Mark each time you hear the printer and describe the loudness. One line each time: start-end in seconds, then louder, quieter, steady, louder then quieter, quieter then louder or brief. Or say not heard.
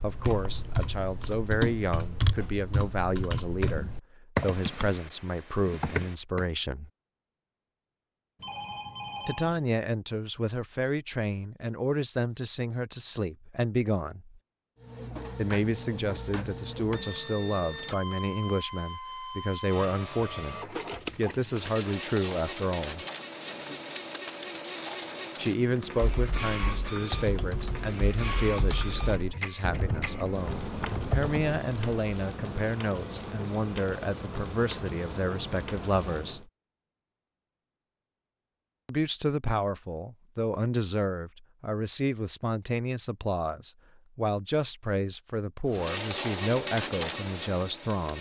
14.8-36.5 steady
45.6-48.1 brief.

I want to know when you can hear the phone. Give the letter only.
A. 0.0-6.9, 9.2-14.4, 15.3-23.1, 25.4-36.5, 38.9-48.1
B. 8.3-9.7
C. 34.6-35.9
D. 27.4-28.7
B.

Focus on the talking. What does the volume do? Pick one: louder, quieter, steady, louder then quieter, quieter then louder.
steady.